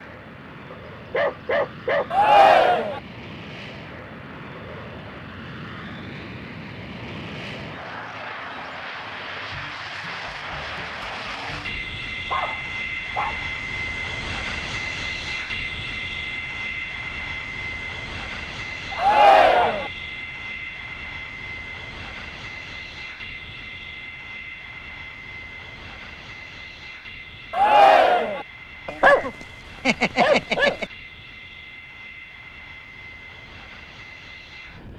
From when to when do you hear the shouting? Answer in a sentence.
The shouting can be heard from 2.1 to 3.0 s, from 18.9 to 19.9 s and from 27.5 to 28.4 s.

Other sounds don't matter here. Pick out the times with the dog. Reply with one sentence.
The dog can be heard from 0.7 to 2.1 s, from 11.7 to 13.4 s, from 18.9 to 19.8 s and from 28.9 to 30.9 s.